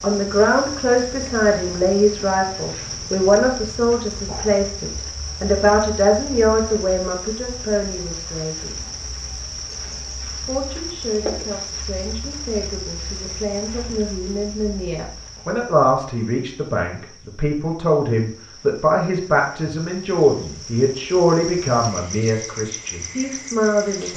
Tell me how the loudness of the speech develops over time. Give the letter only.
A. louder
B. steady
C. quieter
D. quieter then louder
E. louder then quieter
D.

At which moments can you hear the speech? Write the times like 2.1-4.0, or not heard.
0.0-8.8, 10.4-24.1.